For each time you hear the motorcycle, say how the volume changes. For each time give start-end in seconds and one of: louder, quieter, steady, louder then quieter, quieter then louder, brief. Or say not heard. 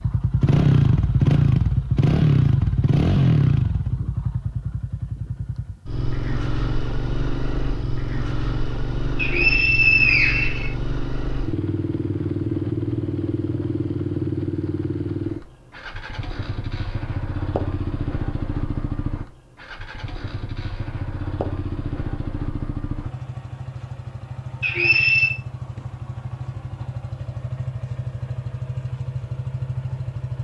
0.0-30.3 quieter.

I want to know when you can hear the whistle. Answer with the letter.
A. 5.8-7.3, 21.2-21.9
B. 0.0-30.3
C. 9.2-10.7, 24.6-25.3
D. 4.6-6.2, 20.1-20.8
C.